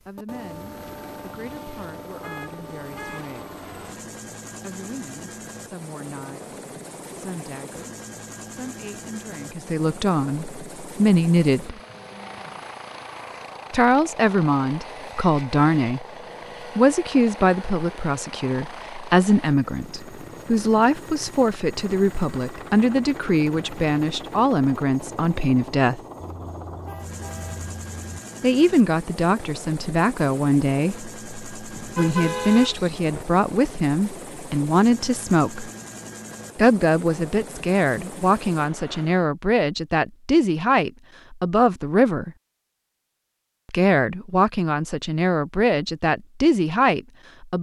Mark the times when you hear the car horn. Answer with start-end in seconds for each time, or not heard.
2.2-3.4, 26.2-28.1, 31.7-33.2.